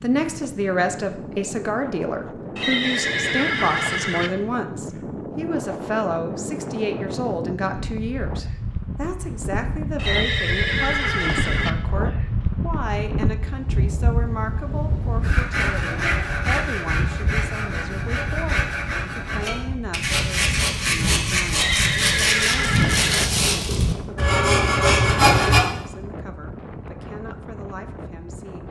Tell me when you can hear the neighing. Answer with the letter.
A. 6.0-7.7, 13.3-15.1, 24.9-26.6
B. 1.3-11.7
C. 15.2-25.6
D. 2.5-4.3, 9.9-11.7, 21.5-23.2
D.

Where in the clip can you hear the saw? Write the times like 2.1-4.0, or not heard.
15.2-25.6.